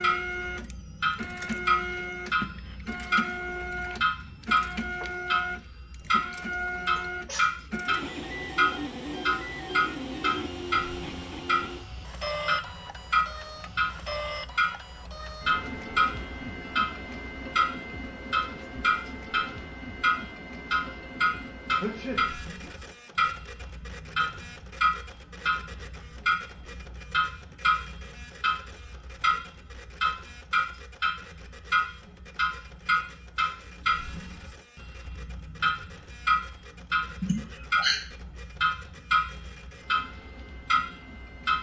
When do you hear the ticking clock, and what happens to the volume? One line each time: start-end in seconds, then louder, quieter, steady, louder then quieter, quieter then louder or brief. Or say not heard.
0.0-41.5 steady.